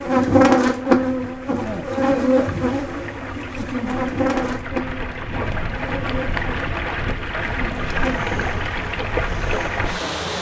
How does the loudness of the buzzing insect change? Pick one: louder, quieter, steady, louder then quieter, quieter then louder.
quieter.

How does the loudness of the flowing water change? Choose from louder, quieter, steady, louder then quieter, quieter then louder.
louder.